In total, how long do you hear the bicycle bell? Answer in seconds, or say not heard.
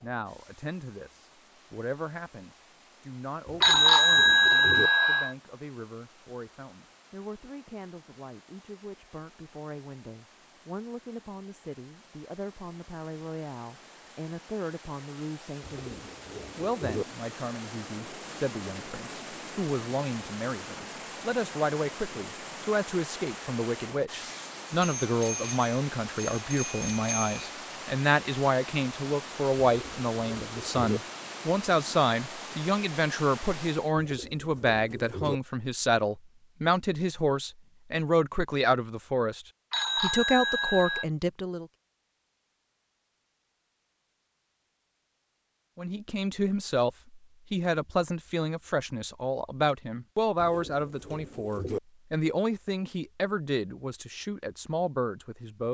6 s.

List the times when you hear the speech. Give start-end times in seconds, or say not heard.
0.0-41.6, 45.8-55.6.